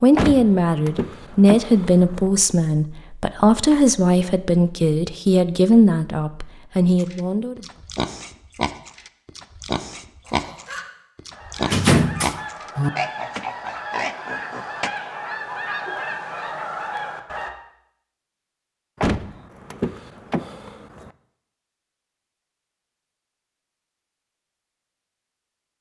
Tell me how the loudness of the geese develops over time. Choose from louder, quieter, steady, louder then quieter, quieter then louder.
louder.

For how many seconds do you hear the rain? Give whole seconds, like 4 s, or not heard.
not heard.